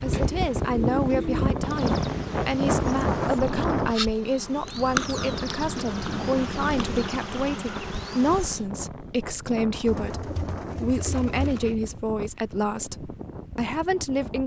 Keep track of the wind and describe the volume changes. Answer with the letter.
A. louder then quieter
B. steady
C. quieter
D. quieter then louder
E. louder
C.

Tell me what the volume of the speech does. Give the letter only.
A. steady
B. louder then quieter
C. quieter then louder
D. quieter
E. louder
A.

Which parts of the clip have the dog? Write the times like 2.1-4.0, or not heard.
not heard.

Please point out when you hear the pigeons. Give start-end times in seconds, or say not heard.
0.1-1.5, 5.0-7.1, 9.8-11.8.